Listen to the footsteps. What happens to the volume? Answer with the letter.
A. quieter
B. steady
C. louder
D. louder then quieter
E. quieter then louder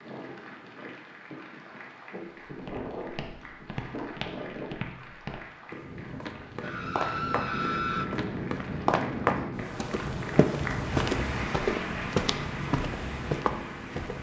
C.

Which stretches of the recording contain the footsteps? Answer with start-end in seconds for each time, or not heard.
2.5-14.1.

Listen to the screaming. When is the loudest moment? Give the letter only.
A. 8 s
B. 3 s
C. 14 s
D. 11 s
A.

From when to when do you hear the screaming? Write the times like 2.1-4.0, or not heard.
6.6-8.1.